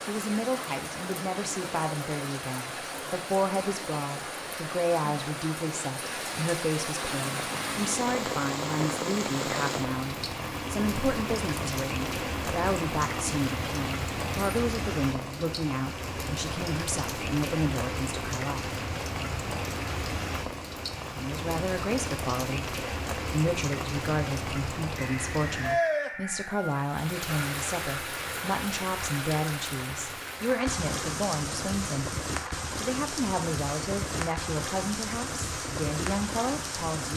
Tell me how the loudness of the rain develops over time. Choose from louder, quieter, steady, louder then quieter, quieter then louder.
steady.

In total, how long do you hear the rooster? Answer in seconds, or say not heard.
2 s.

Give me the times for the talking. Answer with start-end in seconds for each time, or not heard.
0.0-18.6, 21.1-32.1, 32.8-37.1.